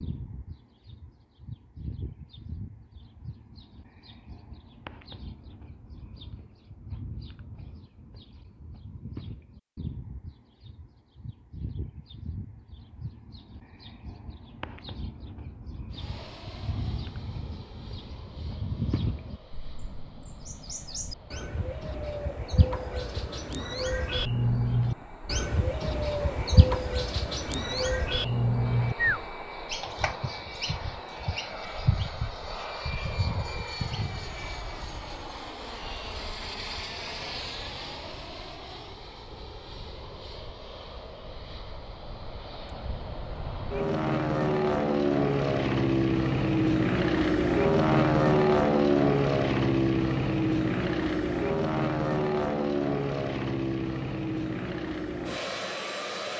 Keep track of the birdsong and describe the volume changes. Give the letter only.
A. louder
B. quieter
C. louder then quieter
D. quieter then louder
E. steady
A.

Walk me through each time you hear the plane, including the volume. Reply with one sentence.
The plane can be heard from 15.9 to 56.3 s, getting louder.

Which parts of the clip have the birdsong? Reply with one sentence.
You can hear the birdsong from 0.0 to 34.4 s.